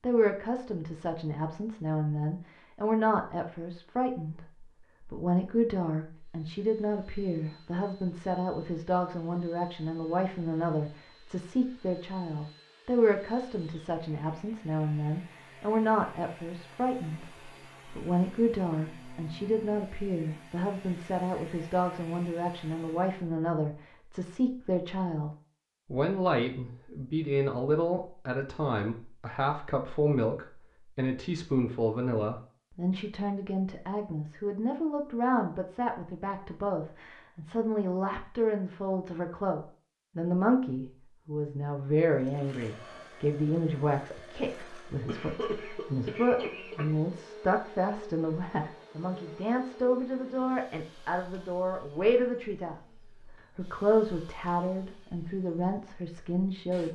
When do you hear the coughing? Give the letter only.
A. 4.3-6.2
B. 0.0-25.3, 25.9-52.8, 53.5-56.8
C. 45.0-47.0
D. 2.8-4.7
C.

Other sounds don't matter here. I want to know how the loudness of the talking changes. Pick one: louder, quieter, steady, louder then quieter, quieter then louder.
steady.